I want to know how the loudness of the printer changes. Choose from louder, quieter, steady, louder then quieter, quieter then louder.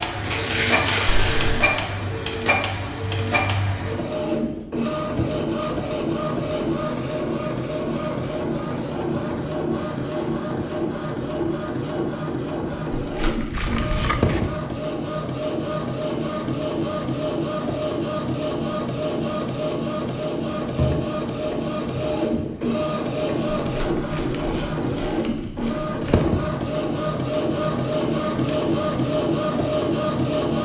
steady.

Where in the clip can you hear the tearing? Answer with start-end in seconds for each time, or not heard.
0.2-1.5, 12.9-14.2, 23.6-25.9.